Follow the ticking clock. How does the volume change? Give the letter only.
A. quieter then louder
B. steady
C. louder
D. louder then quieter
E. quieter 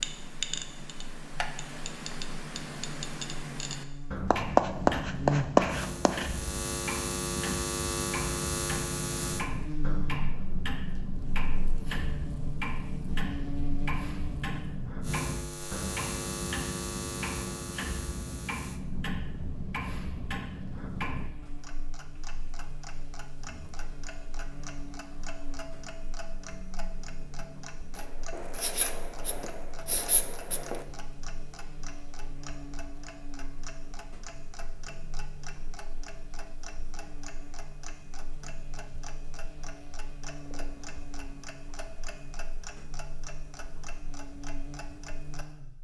E.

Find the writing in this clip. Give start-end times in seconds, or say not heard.
4.3-6.2, 27.9-30.9.